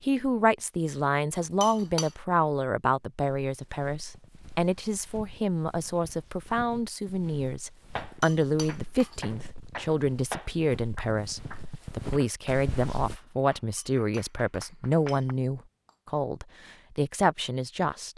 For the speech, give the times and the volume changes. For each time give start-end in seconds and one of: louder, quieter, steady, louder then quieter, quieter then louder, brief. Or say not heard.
0.0-18.1 steady.